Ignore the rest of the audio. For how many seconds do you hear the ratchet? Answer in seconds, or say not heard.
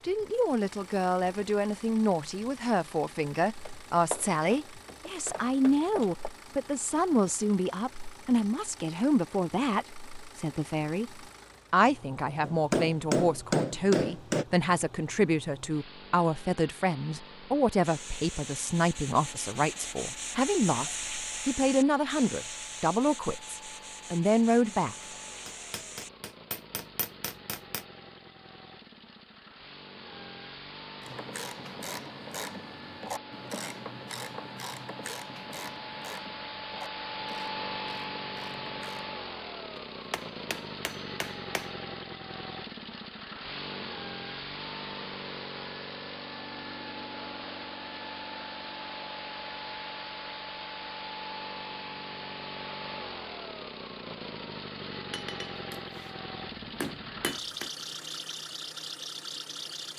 8 s.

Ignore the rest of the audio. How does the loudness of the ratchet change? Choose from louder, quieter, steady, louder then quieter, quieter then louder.
quieter.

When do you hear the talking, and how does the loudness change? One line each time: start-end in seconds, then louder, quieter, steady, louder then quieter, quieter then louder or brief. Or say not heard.
0.1-24.9 steady.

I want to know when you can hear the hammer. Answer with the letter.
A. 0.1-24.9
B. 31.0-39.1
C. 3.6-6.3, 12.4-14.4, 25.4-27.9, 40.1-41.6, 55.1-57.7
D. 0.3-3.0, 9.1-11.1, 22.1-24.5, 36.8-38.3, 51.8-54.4
C.